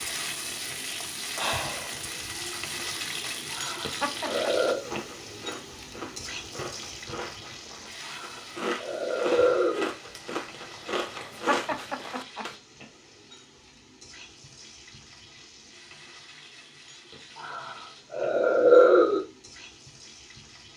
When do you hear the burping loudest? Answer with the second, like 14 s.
19 s.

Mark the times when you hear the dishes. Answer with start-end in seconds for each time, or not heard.
not heard.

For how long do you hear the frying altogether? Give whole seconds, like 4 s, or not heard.
21 s.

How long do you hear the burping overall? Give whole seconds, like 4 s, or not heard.
5 s.